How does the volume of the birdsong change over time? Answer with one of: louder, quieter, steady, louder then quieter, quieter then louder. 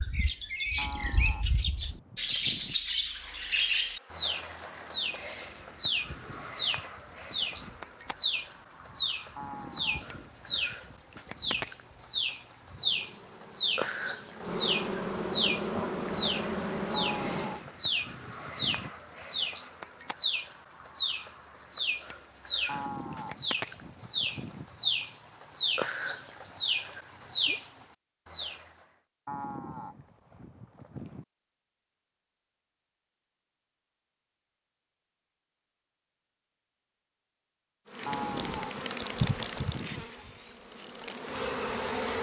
steady.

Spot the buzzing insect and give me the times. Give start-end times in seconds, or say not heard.
3.1-17.6, 37.9-42.1.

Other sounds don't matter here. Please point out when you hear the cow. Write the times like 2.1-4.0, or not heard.
0.8-2.8, 9.3-11.1, 16.9-18.9, 22.6-24.7, 29.2-31.2, 38.0-40.0.